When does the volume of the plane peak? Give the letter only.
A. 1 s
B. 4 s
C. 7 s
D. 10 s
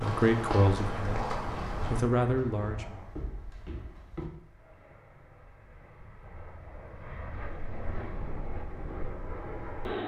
D.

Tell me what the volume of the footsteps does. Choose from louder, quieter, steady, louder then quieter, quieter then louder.
quieter.